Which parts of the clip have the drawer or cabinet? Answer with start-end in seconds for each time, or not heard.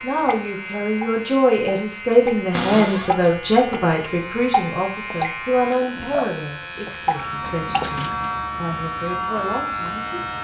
2.5-3.2, 7.4-8.4.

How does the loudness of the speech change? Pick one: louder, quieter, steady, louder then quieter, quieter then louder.
quieter.